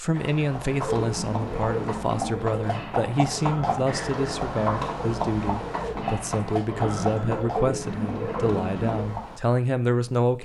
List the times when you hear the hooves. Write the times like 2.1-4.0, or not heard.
0.1-9.4.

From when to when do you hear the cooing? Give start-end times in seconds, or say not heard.
0.8-9.1.